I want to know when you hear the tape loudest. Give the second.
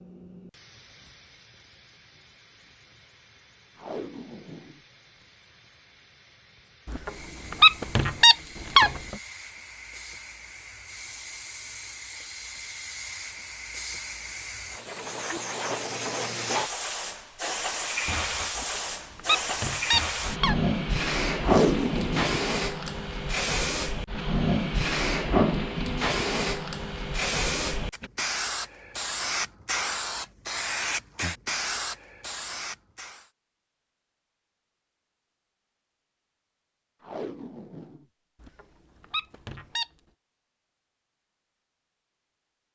22 s.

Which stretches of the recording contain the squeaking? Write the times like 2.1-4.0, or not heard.
6.8-9.2, 18.6-20.6, 38.4-39.9.